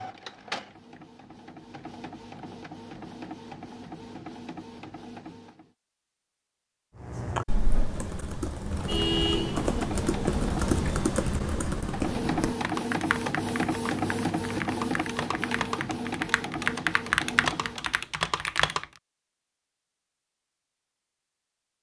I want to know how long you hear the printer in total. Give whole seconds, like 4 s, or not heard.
15 s.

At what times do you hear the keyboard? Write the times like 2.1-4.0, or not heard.
7.0-18.9.